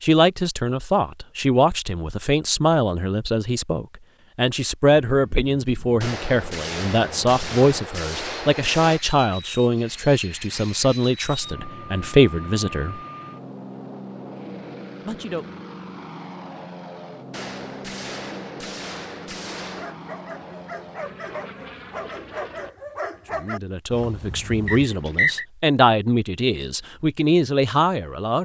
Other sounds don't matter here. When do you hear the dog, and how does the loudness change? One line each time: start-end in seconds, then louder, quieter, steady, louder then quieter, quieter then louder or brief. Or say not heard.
19.8-24.9 louder then quieter.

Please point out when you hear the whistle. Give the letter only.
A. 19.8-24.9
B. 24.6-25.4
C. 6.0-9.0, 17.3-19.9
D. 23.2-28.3
B.